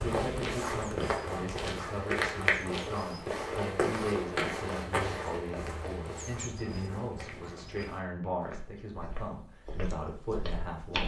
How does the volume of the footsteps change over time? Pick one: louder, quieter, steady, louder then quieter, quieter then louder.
quieter.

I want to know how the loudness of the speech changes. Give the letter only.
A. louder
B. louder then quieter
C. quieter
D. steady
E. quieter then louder
D.